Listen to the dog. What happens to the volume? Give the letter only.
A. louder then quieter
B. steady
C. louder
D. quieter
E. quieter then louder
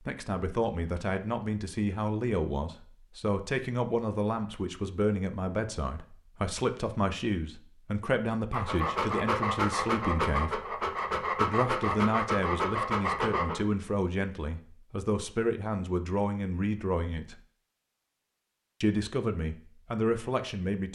B.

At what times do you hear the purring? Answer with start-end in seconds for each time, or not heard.
not heard.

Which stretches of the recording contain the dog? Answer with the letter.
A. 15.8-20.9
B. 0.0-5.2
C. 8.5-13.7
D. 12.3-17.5
C.